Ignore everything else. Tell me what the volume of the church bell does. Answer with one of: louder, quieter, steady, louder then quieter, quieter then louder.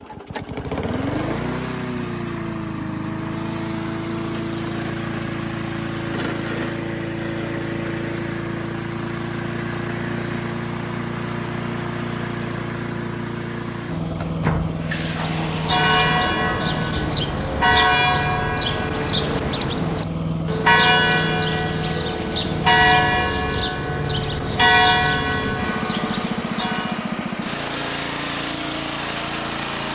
steady.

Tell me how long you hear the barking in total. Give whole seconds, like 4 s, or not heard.
not heard.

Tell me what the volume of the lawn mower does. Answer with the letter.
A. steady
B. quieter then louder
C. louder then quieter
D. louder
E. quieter
A.